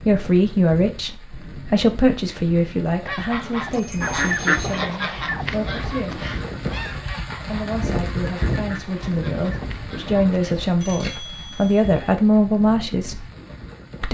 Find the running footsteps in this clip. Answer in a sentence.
You can't hear the running footsteps here.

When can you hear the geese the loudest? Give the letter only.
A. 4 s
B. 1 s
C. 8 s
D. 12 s
A.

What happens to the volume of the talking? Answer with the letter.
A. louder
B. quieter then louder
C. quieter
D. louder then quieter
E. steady
B.